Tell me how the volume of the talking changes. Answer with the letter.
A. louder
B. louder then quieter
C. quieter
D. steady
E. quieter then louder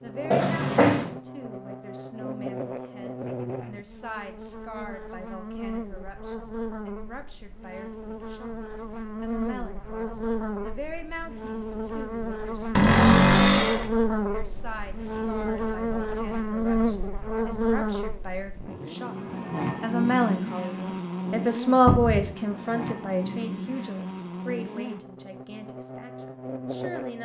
B.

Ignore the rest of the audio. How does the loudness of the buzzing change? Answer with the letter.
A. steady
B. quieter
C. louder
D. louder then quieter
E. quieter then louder
D.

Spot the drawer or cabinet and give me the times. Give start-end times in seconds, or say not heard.
0.3-1.1, 12.8-13.9, 21.9-22.3.